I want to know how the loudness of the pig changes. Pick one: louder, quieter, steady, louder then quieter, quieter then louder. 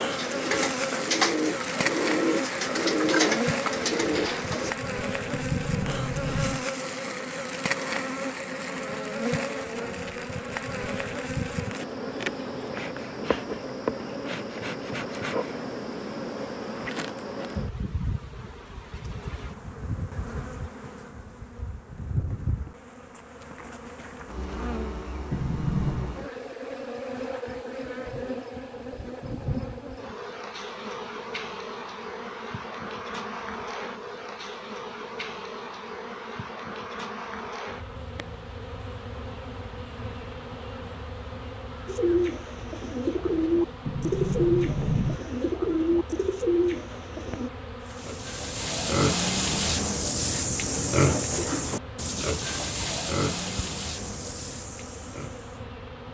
quieter.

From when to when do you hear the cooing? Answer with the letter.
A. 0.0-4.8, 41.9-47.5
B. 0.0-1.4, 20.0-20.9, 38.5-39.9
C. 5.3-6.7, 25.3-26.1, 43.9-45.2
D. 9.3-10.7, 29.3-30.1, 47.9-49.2
A.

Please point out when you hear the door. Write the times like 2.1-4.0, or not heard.
5.3-6.7, 25.3-26.1, 43.9-45.2.